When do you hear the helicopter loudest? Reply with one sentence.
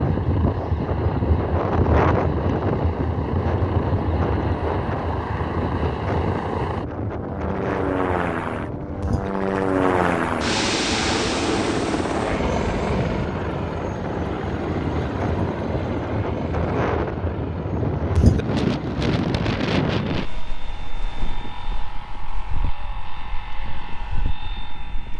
The volume of the helicopter peaks at 10 seconds.